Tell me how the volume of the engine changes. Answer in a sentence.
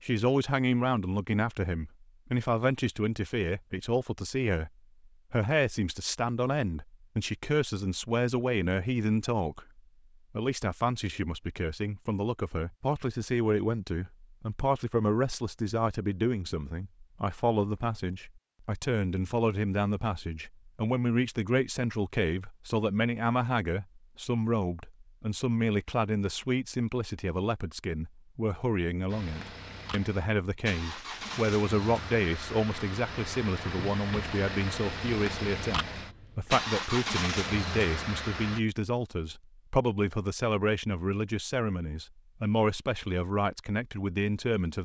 The loudness of the engine goes up.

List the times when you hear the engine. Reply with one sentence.
The engine can be heard from 29.1 to 38.6 s.